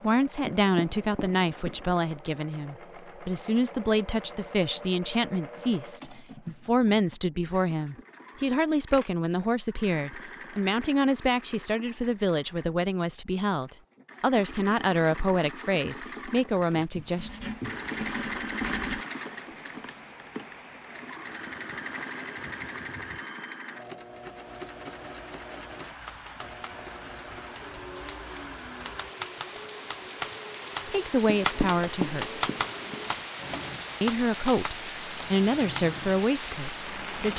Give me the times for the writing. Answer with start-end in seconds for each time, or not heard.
0.5-2.0, 17.1-19.1, 31.2-33.1.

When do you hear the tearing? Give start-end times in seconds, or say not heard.
not heard.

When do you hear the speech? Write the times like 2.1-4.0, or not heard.
0.0-17.3, 30.9-32.4, 34.0-37.3.